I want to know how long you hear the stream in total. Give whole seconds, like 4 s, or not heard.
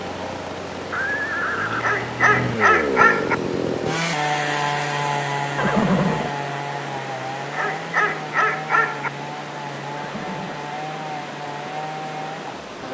13 s.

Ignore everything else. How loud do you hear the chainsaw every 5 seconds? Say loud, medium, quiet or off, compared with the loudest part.
loud, loud, medium.